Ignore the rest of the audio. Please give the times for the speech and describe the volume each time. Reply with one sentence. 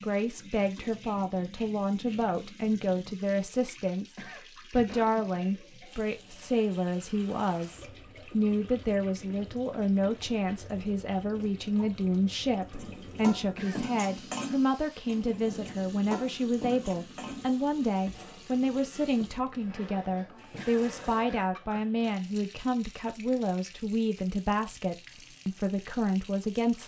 You can hear the speech from 0.0 to 26.8 s, at a steady volume.